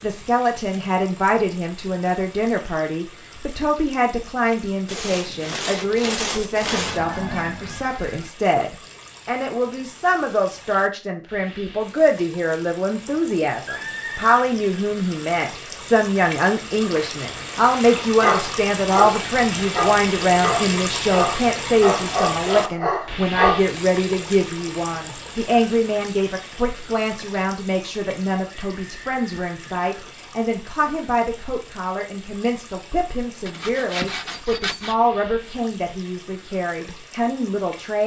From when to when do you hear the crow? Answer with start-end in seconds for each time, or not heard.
not heard.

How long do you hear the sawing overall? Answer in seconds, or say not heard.
4 s.